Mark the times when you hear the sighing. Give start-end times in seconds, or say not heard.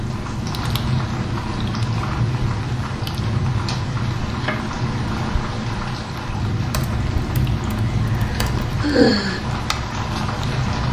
8.1-9.4.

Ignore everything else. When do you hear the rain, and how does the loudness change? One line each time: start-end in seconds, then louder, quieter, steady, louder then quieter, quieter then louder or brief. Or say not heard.
0.0-10.8 steady.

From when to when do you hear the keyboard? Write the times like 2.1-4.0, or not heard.
6.7-8.8.